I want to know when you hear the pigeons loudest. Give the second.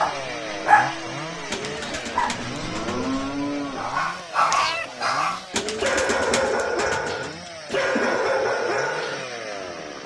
6 s.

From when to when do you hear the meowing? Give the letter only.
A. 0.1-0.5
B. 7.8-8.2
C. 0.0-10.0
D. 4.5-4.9
D.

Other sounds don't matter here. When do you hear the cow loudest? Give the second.
3 s.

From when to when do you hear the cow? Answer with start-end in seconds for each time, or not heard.
0.1-4.1.